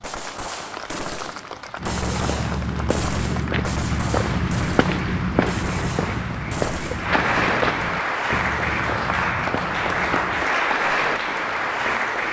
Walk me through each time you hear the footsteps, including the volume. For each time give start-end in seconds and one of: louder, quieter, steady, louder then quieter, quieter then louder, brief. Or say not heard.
1.8-10.5 quieter.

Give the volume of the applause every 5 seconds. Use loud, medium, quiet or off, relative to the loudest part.
quiet, loud, loud.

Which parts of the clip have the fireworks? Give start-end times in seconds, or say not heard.
0.0-7.7.